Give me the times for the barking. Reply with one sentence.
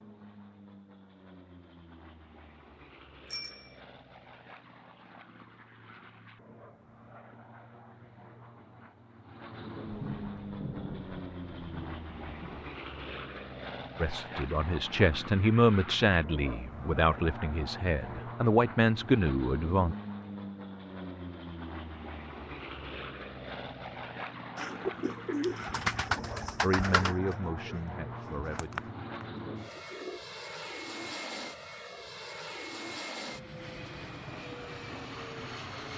The barking can't be heard in this clip.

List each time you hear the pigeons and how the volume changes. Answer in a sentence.
The pigeons can be heard from 24.6 to 30.2 s, getting quieter.